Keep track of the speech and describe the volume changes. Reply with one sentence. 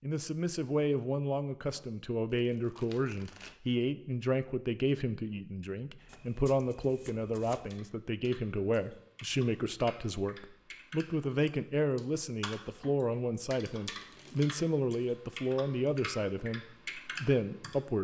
The loudness of the speech stays about the same.